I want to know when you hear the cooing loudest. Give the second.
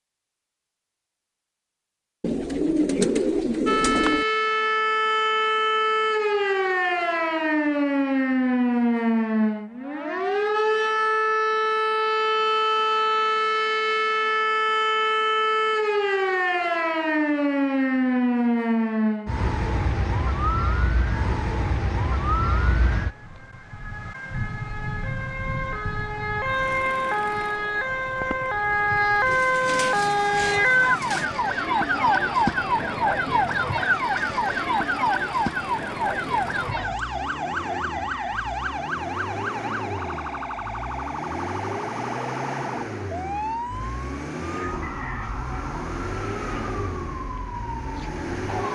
3 s.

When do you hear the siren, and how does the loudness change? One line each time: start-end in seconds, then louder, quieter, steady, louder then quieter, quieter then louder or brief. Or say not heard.
3.6-48.6 quieter.